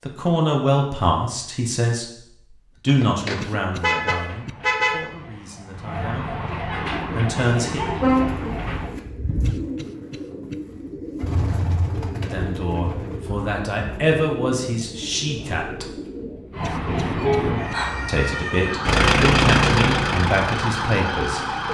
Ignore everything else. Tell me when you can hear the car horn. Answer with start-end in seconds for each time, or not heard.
2.9-5.0, 8.0-8.9, 16.9-17.6.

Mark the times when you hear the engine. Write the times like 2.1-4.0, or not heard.
18.9-21.6.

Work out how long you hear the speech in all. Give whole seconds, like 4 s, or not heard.
14 s.